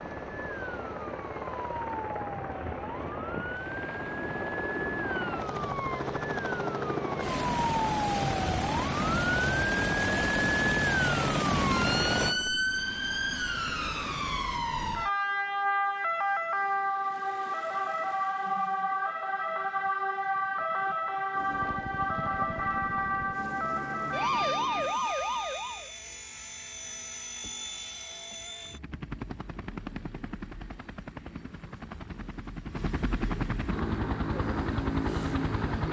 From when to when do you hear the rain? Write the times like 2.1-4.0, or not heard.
not heard.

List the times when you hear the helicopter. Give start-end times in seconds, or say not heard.
0.0-12.5, 21.3-35.8.